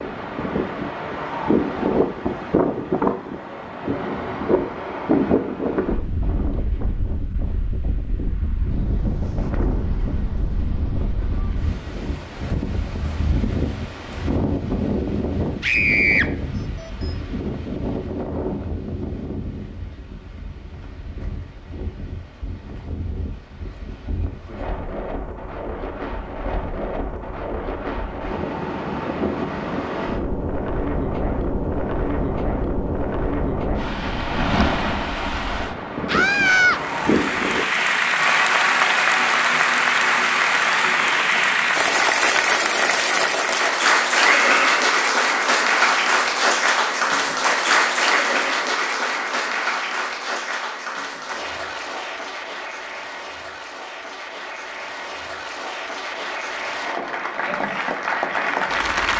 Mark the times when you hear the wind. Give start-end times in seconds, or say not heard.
0.0-37.7.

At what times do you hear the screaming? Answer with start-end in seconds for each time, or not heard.
15.6-16.2, 36.0-36.8, 44.2-44.9.